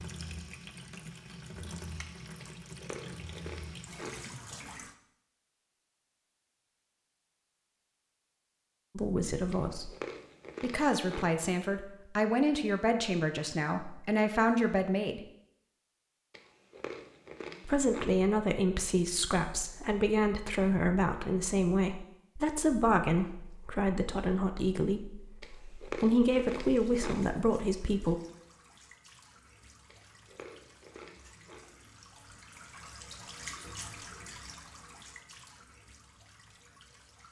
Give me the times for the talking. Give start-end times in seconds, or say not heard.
8.9-9.9, 10.6-15.2, 17.6-28.1.